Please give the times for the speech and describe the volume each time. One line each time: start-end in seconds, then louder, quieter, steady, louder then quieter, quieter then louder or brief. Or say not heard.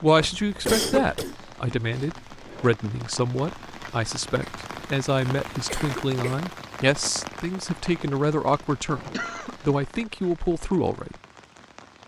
0.0-11.2 steady.